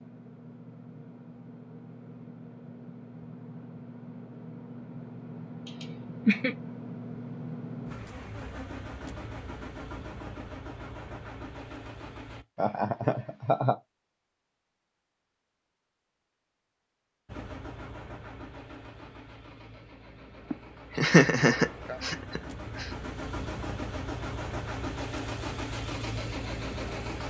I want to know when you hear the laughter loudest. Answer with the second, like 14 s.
21 s.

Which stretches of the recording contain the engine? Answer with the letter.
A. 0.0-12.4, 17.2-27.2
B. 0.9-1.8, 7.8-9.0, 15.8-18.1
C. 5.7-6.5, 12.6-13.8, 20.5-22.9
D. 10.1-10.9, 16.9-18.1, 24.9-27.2
A.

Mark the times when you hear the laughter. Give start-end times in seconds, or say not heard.
5.7-6.5, 12.6-13.8, 20.5-22.9.